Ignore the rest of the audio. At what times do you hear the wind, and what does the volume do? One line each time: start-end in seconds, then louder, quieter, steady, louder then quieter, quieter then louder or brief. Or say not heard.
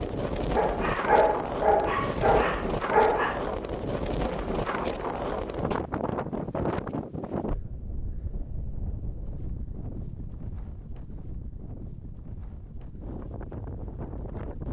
0.0-14.6 quieter.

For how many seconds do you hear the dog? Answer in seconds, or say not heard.
3 s.